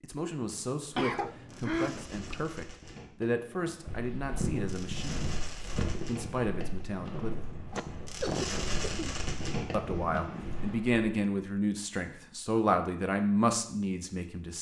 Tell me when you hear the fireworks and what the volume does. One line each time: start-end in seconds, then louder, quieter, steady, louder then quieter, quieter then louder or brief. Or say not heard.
0.3-10.8 louder.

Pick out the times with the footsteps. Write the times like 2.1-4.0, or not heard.
3.9-11.0.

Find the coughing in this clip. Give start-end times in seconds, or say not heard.
0.9-2.5, 7.7-9.2.